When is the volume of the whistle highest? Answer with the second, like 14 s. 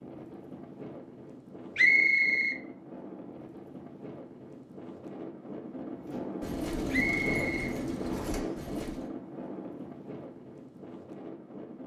2 s.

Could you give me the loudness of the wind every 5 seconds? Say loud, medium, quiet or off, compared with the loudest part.
medium, loud, medium.